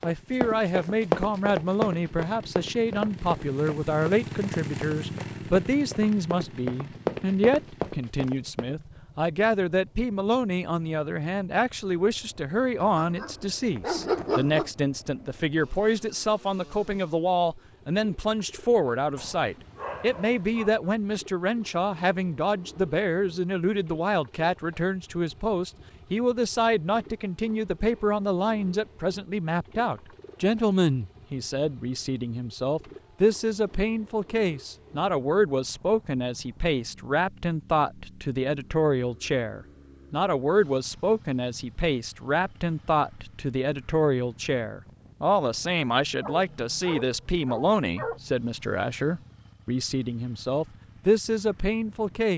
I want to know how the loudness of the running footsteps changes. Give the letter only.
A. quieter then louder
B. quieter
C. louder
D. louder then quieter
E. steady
A.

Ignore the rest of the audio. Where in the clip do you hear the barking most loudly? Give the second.
14 s.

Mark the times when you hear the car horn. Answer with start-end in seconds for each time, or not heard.
not heard.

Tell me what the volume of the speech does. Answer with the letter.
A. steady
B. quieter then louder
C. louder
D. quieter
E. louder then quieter
A.